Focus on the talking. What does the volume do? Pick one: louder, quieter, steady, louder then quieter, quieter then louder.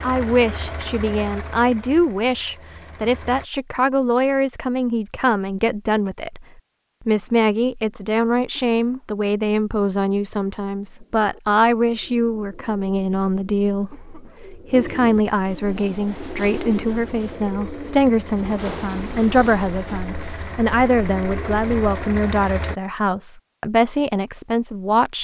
steady.